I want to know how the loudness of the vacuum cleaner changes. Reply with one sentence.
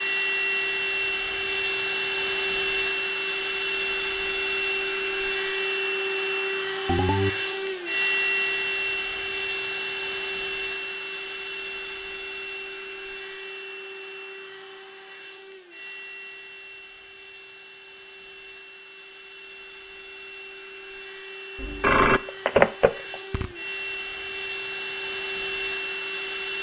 The volume of the vacuum cleaner goes down, then up.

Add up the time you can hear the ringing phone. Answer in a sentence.
The ringing phone can be heard for 2 seconds in total.